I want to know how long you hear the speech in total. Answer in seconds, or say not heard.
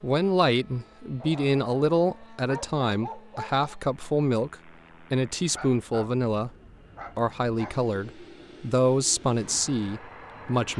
10 s.